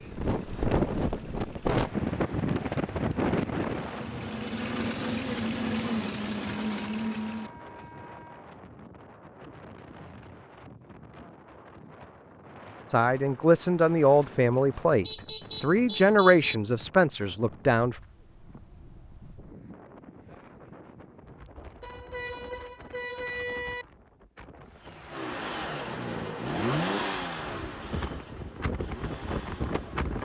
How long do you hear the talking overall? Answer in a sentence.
You can hear the talking for 5 seconds altogether.